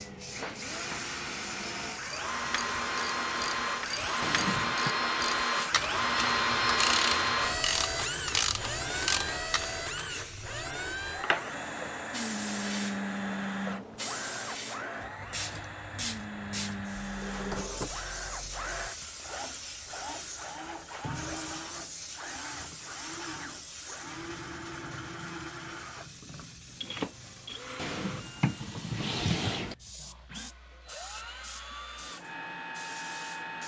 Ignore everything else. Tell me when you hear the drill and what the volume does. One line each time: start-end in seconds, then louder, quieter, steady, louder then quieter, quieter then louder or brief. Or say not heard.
0.0-33.6 quieter.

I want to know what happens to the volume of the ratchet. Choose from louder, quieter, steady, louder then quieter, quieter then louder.
louder.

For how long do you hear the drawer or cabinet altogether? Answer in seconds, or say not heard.
5 s.